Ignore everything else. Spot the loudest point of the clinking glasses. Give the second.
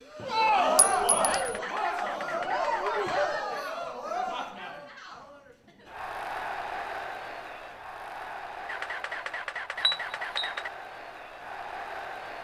10 s.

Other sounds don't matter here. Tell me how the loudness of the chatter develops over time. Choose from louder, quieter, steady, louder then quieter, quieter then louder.
quieter.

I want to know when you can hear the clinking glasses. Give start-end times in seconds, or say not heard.
0.8-1.5, 9.8-10.6.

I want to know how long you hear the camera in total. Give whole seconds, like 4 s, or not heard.
4 s.